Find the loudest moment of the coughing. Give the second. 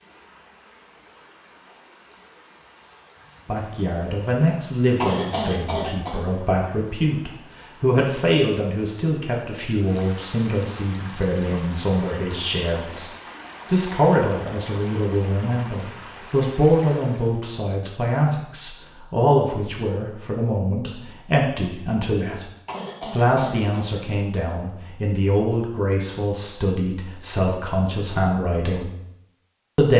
5 s.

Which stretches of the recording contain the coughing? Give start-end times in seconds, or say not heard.
5.0-6.2, 22.6-23.8.